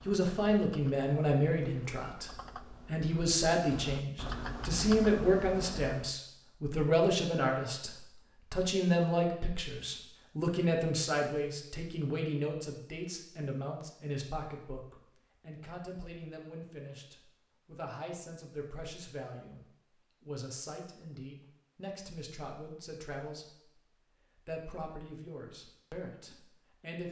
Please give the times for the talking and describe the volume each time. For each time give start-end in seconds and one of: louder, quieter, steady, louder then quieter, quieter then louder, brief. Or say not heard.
0.1-7.9 quieter then louder
8.5-27.0 quieter.